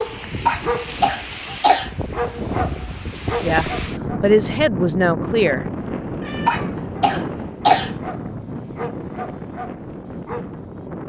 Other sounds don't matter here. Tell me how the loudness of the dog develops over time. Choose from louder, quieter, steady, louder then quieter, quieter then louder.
quieter.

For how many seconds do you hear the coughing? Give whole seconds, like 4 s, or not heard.
3 s.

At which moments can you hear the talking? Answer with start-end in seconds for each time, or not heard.
3.4-5.7.